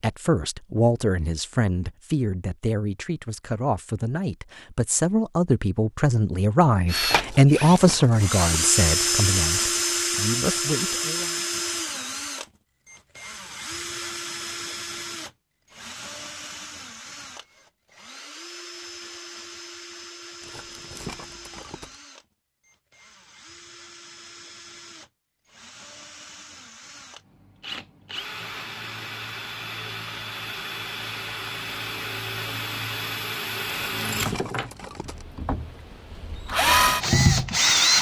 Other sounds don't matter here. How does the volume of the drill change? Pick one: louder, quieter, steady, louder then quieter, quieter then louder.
quieter then louder.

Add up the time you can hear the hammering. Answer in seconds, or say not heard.
not heard.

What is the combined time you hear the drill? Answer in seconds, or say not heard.
31 s.